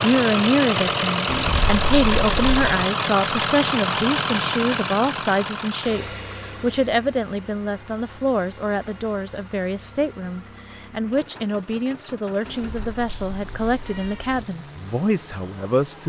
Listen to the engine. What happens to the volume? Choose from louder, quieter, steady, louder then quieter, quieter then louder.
quieter.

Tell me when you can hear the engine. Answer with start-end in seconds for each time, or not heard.
0.0-16.0.